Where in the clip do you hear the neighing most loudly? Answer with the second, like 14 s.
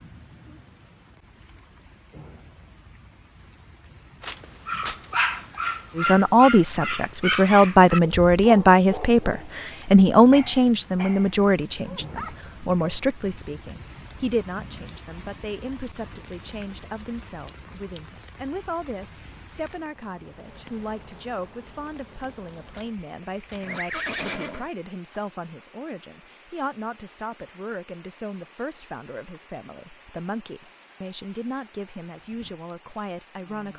24 s.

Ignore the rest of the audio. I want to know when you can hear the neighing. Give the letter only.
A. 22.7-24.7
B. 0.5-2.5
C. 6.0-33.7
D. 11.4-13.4
A.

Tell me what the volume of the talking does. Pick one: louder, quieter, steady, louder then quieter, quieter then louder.
quieter.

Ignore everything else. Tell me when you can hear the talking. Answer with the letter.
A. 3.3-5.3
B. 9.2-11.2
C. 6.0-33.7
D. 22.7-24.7
C.